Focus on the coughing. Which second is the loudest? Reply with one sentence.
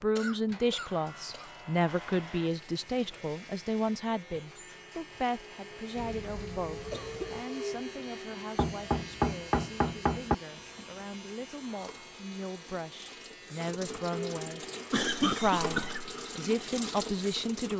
The loudest moment of the coughing is at 15 seconds.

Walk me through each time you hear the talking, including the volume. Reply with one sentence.
You can hear the talking from 0.0 to 17.7 s, getting quieter then louder.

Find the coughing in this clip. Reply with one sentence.
The coughing can be heard from 0.1 to 2.1 s, from 6.0 to 7.5 s and from 14.9 to 16.1 s.